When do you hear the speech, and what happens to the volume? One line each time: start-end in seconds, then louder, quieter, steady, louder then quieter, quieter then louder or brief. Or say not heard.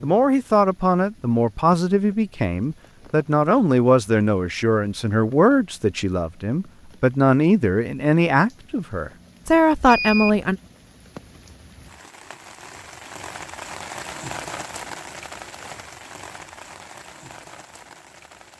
0.0-10.6 steady.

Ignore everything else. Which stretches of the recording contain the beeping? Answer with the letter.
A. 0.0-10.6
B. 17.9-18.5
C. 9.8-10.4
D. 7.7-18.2
C.